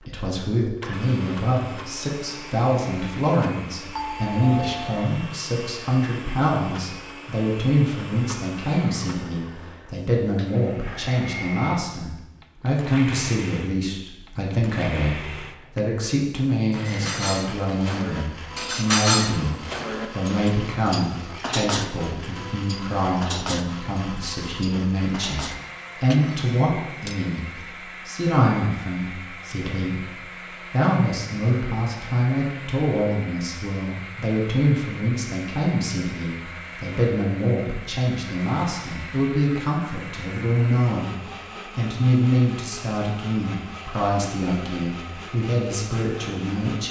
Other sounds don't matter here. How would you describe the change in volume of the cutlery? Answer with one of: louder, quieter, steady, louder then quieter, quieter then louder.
louder then quieter.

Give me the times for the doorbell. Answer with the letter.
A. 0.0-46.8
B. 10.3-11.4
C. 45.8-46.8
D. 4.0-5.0
D.